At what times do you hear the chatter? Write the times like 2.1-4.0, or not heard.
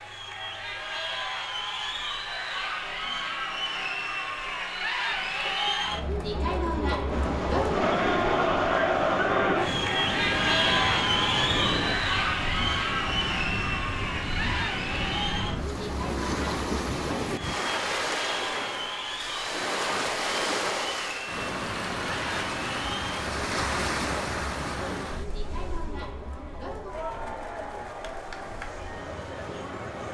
0.0-30.0.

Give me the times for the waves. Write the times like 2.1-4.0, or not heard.
7.0-30.0.